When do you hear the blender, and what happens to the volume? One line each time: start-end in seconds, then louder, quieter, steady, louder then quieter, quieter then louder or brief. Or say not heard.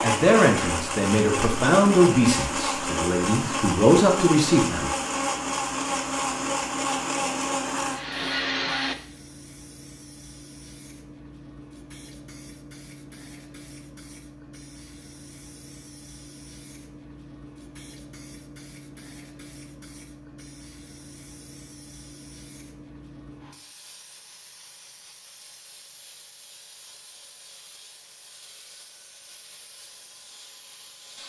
0.0-8.9 steady.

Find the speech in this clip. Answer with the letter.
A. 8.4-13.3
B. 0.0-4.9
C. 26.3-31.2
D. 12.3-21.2
B.